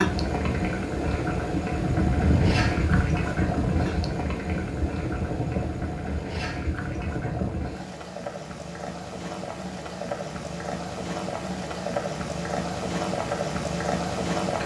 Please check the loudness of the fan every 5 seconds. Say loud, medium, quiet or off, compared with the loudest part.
loud, loud, off.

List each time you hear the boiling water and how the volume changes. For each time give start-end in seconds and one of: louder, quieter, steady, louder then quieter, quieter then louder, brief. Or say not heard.
0.0-14.6 quieter then louder.